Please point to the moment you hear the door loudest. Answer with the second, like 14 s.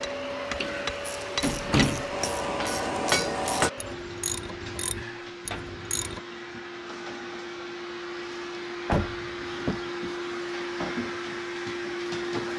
2 s.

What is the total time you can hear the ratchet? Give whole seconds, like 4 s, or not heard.
5 s.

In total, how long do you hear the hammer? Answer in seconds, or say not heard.
4 s.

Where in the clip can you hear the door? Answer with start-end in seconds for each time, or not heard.
0.6-2.1, 5.0-5.8, 8.8-9.9.